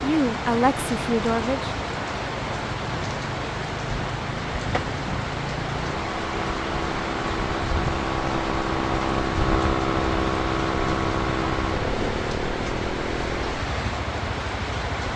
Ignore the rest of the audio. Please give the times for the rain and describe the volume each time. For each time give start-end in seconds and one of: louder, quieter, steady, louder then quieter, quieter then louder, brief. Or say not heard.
0.0-15.1 steady.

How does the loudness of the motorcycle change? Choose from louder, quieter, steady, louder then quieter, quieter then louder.
louder then quieter.